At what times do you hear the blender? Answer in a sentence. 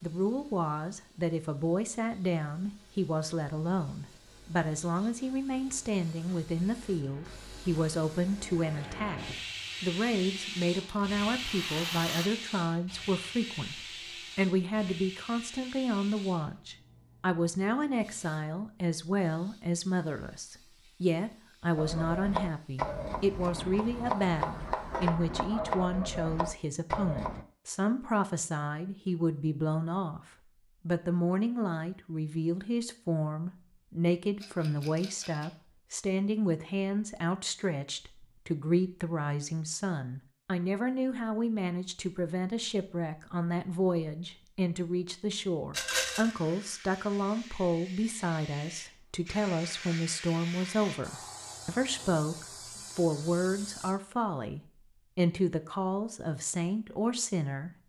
You can't hear the blender here.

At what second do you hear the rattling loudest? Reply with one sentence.
The loudest moment of the rattling is at 46 seconds.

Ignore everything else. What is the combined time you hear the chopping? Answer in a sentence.
You can hear the chopping for 6 seconds altogether.